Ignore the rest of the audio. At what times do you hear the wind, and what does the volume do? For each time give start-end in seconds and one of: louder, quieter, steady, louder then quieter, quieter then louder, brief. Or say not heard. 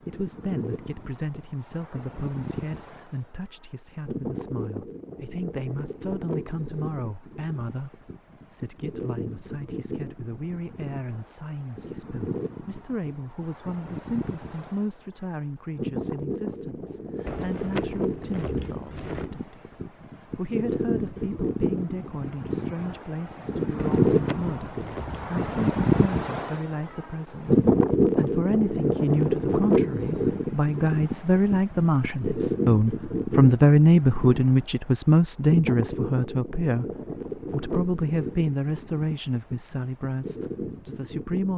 0.0-41.5 louder then quieter.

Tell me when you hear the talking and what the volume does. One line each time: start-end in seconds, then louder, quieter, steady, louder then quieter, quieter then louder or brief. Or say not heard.
0.1-36.9 louder
37.5-41.5 quieter.